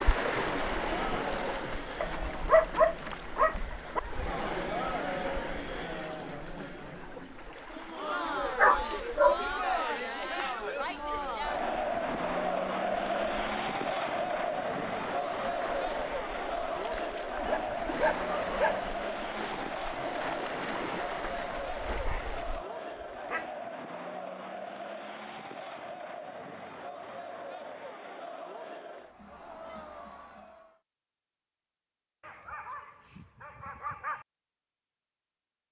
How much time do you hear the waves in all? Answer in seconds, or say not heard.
23 s.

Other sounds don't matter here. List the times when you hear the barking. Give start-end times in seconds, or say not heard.
2.0-4.0, 8.6-9.4, 17.4-18.8, 22.1-23.5, 32.2-34.2.